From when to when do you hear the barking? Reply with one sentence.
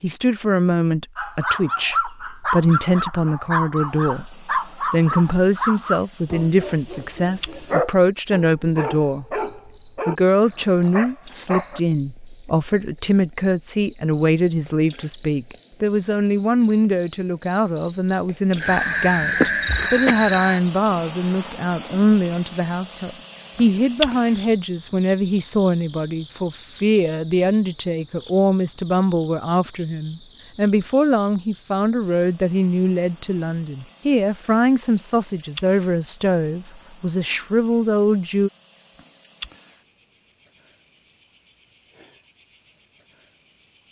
You can hear the barking from 1.1 to 11.8 s.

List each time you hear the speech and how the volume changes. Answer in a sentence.
You can hear the speech from 0.0 to 9.4 s, at a steady volume; and from 10.1 to 38.5 s, at a steady volume.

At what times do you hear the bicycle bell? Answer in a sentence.
You can't hear the bicycle bell here.